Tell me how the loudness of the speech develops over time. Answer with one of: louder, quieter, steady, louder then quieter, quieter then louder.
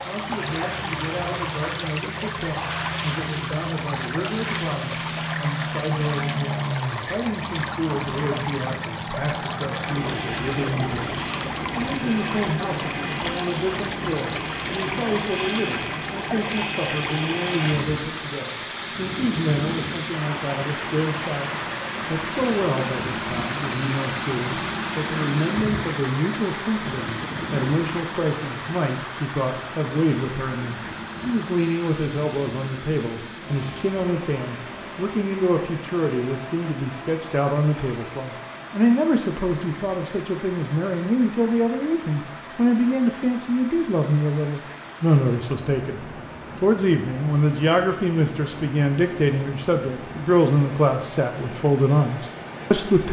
louder.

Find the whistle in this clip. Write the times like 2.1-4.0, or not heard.
not heard.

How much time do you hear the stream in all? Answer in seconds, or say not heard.
53 s.